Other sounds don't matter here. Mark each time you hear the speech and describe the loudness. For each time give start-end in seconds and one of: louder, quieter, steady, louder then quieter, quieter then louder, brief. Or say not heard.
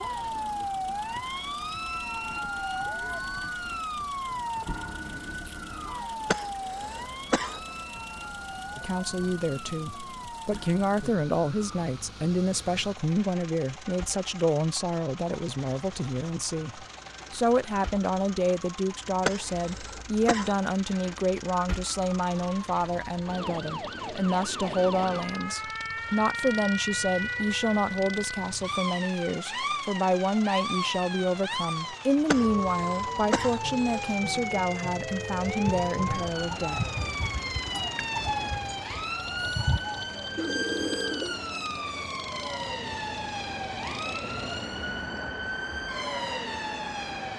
8.8-36.8 steady.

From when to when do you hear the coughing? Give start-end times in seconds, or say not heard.
6.2-7.6, 19.2-20.6, 32.2-34.1.